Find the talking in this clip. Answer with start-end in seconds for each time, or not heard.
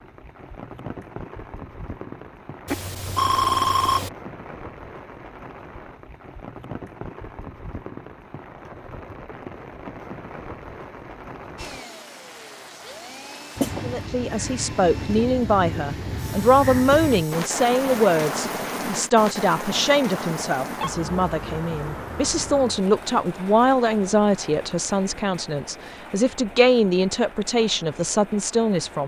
13.8-29.0.